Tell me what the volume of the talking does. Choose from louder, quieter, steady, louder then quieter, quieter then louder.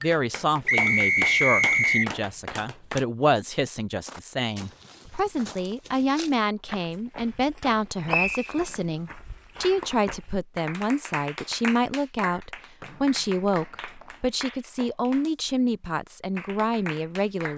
steady.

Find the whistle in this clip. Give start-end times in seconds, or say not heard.
0.7-2.1, 8.1-8.7, 12.8-14.2.